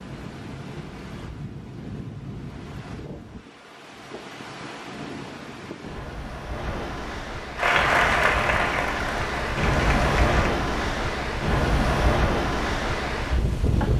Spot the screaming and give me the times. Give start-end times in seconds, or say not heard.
not heard.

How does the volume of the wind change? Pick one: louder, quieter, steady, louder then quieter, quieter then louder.
louder.